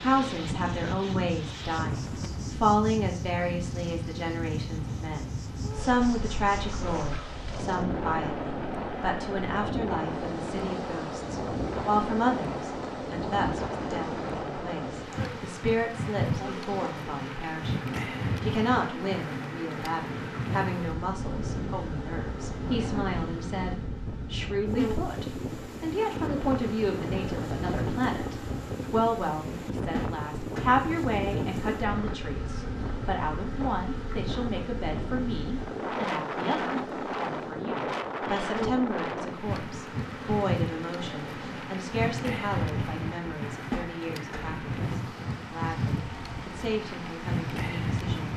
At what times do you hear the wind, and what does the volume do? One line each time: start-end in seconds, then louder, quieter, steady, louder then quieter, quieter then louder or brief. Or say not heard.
0.0-48.3 steady.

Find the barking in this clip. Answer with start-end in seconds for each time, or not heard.
not heard.